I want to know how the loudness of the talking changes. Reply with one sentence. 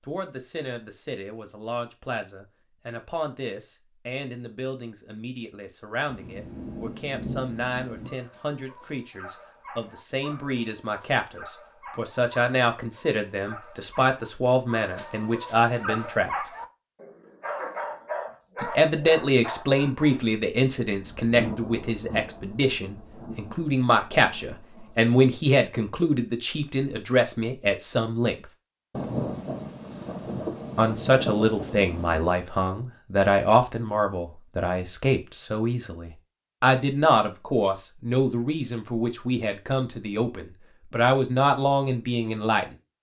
The loudness of the talking goes up.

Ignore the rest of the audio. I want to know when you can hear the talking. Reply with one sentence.
The talking can be heard from 0.1 to 16.3 s, from 18.6 to 28.4 s and from 30.8 to 42.6 s.